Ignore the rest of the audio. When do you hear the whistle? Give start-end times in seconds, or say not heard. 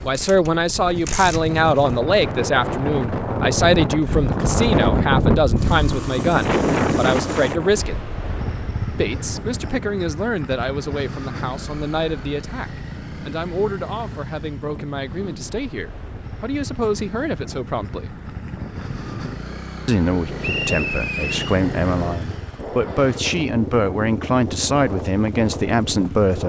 20.4-21.6.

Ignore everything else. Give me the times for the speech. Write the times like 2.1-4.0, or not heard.
0.0-8.0, 8.9-18.1, 19.9-26.4.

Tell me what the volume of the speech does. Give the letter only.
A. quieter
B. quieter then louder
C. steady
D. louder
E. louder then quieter
B.